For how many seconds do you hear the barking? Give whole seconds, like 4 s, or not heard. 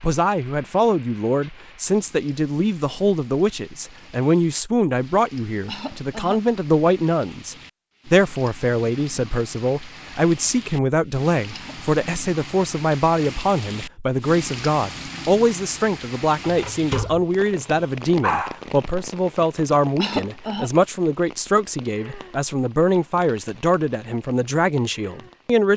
2 s.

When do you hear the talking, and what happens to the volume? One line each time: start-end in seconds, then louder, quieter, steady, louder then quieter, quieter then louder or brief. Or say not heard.
0.0-25.7 steady.